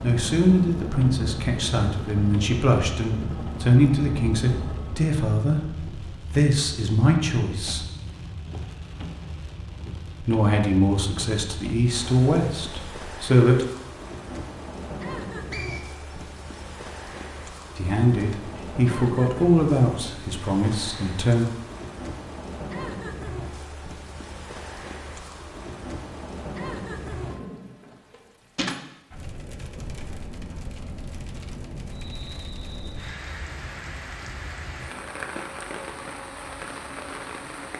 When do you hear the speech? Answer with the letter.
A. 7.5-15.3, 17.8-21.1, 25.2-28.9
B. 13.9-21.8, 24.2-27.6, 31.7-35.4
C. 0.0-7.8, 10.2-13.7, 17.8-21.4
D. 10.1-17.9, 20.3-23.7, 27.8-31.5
C.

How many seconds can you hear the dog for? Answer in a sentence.
The dog can't be heard in this clip.